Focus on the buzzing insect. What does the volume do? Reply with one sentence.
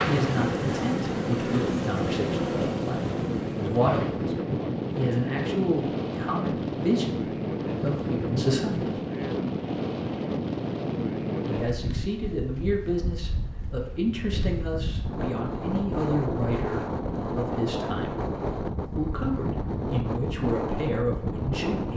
The volume of the buzzing insect goes down.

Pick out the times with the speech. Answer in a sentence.
You can hear the speech from 0.0 to 4.3 s, from 5.0 to 9.0 s, from 11.4 to 18.1 s and from 18.9 to 21.9 s.